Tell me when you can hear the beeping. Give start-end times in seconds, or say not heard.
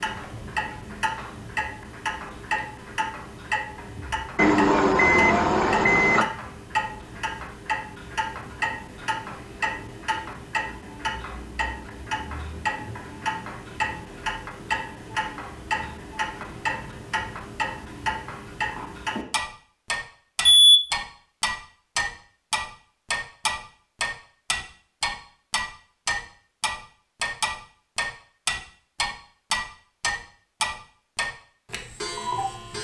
4.3-6.2, 20.4-20.9.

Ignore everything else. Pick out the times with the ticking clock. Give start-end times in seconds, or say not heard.
0.0-32.8.